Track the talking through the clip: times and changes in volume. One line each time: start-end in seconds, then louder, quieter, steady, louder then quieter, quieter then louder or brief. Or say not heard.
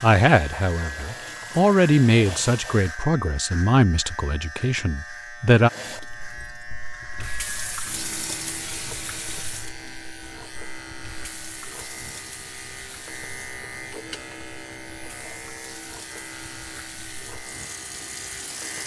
0.0-5.7 louder then quieter.